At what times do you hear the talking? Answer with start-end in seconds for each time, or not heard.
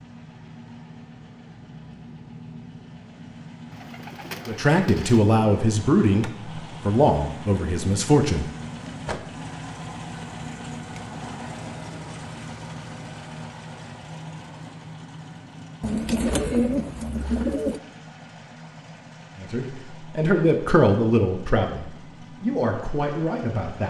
4.5-8.4, 19.4-23.8.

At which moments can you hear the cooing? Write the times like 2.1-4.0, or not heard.
3.7-5.2, 15.8-17.8.